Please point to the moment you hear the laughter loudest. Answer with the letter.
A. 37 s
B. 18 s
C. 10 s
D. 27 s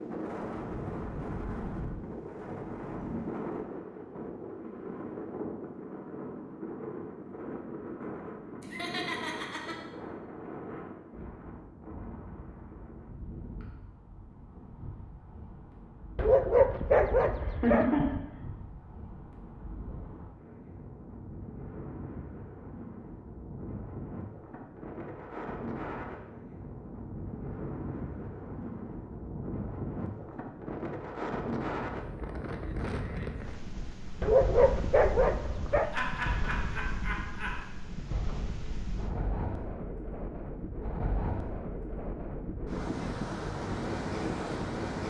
B.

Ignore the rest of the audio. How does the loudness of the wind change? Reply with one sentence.
The volume of the wind goes down, then up.